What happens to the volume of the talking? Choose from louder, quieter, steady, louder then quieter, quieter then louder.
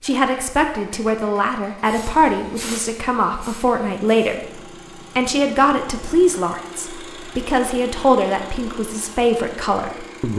steady.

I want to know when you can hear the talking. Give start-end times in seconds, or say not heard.
0.0-10.3.